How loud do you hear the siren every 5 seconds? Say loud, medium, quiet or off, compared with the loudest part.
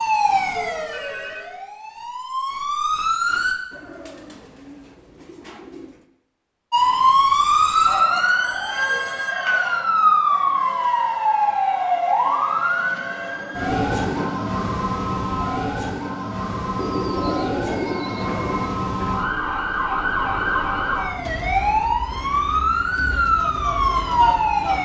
medium, loud, loud, medium, loud.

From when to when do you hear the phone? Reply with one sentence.
You can hear the phone from 0.5 to 1.7 s, from 8.4 to 9.3 s and from 17.6 to 19.2 s.